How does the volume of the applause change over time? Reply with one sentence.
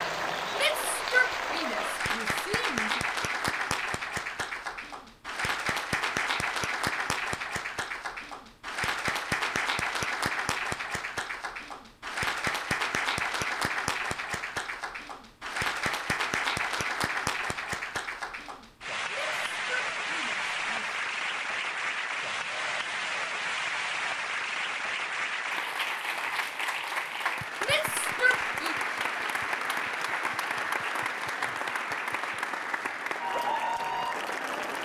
The loudness of the applause stays about the same.